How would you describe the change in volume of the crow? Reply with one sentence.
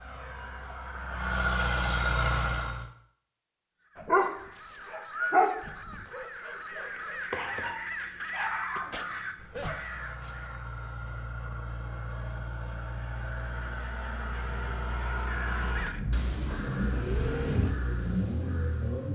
The loudness of the crow goes up, then down.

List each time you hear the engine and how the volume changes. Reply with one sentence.
You can hear the engine briefly from 0.0 to 2.9 s; and from 9.3 to 19.1 s, getting louder.